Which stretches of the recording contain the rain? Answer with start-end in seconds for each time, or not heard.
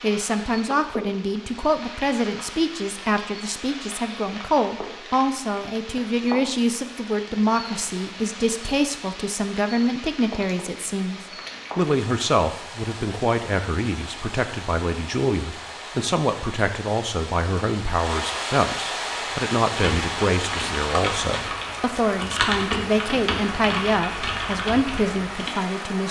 0.0-26.0.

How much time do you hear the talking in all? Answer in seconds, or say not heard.
26 s.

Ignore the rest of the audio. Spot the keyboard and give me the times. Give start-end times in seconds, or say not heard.
19.1-25.6.